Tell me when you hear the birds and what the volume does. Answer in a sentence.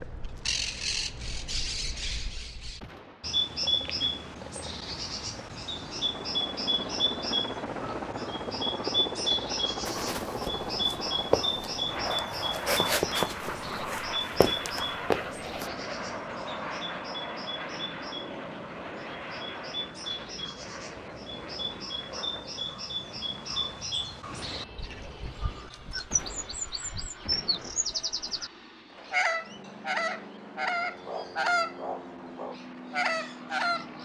You can hear the birds from 0.0 to 33.9 s, getting quieter then louder.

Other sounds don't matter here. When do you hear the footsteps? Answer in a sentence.
You can hear the footsteps from 9.8 to 15.7 s.